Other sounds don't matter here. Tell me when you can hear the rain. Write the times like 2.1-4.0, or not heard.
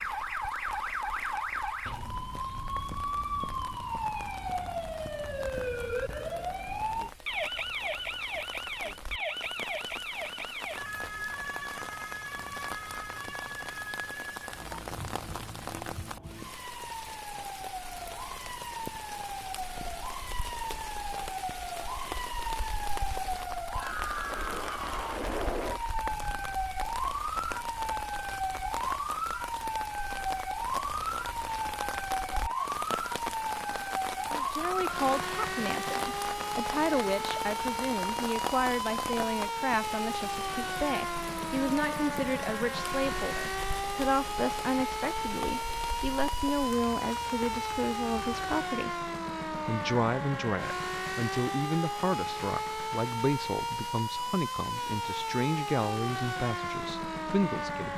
0.0-48.6.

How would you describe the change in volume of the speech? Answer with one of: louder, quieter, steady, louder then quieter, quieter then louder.
steady.